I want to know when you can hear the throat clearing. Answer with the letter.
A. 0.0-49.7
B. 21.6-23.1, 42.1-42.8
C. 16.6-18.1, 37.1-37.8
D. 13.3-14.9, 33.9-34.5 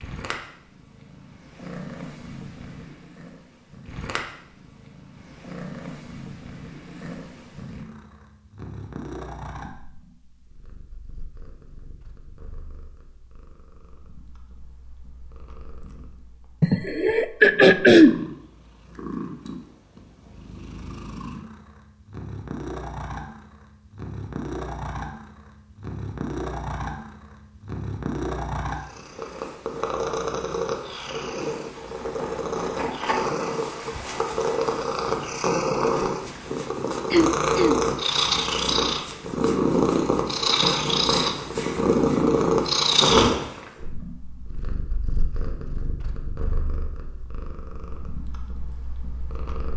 C.